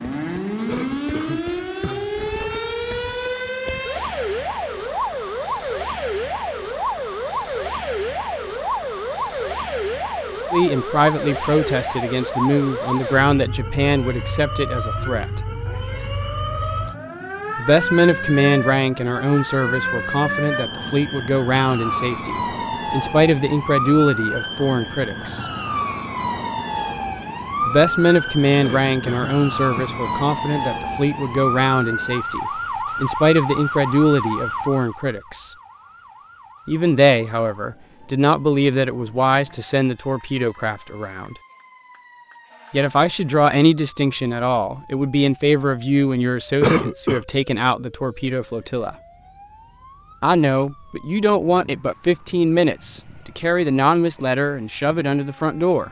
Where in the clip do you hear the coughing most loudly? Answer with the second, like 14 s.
47 s.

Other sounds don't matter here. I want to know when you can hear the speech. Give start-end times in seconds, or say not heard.
10.5-15.4, 17.6-25.4, 27.6-35.5, 36.6-41.4, 42.7-49.0, 50.2-55.8.